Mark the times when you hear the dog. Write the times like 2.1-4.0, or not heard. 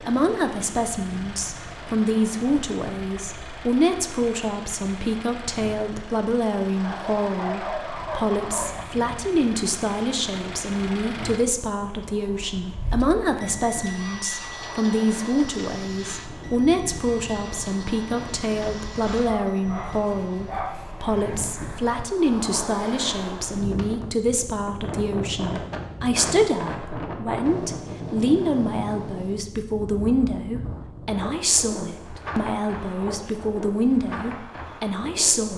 6.8-8.8, 19.1-20.8.